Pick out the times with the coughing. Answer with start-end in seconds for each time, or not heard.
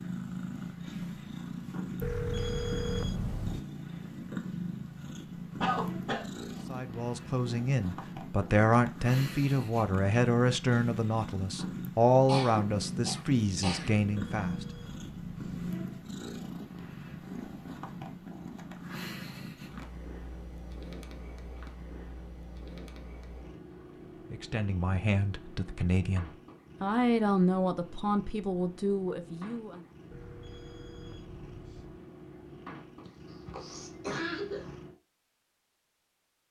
5.6-6.2, 12.2-13.9, 33.0-34.8.